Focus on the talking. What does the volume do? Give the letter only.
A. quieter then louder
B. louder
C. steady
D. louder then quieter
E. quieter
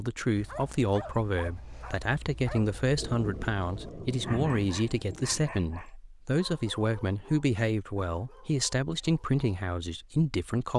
C.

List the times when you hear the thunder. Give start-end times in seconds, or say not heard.
3.0-5.5.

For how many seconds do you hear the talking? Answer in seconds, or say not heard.
11 s.